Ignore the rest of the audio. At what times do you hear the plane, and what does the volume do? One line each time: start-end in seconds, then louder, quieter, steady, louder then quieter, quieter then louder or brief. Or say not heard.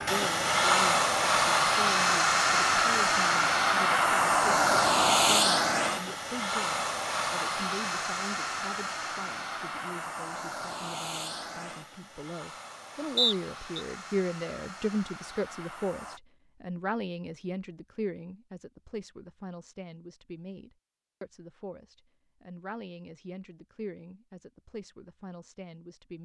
0.0-16.2 quieter.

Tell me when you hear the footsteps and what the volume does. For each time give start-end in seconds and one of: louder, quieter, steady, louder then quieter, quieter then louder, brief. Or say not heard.
not heard.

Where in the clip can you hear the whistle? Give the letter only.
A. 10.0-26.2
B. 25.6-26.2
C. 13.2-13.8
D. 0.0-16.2
C.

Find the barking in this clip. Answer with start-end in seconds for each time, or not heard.
not heard.